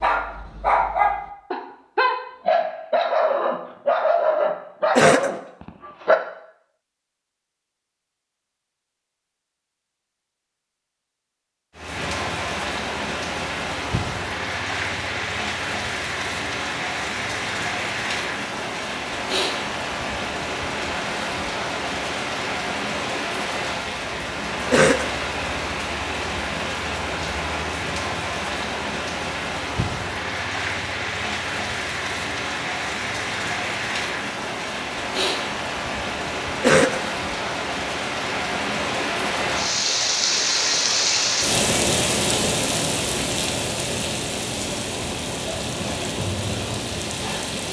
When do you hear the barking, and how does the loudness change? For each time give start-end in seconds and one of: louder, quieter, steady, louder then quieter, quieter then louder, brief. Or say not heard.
0.0-6.2 steady.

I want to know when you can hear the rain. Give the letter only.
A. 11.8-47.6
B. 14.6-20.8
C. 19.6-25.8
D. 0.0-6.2
A.